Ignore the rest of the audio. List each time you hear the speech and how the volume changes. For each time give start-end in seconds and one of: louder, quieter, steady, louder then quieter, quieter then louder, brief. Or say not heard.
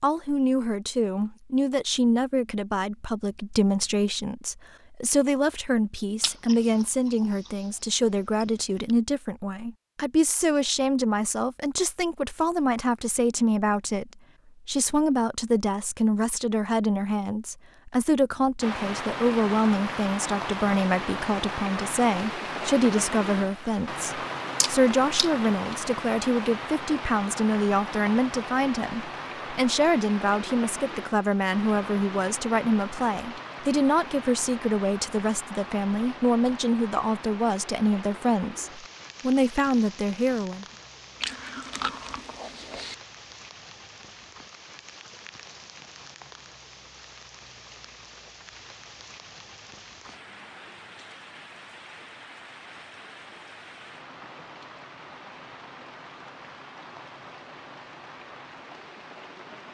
0.0-40.6 steady.